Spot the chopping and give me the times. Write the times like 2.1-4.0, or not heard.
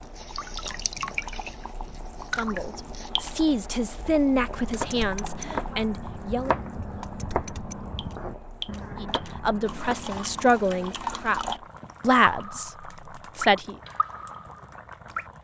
4.5-10.6.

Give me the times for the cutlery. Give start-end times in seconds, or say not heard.
not heard.